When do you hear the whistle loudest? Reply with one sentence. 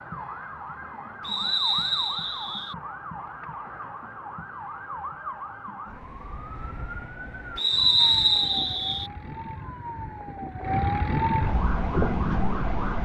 The loudest moment of the whistle is at 8 seconds.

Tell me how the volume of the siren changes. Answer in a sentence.
The loudness of the siren goes up.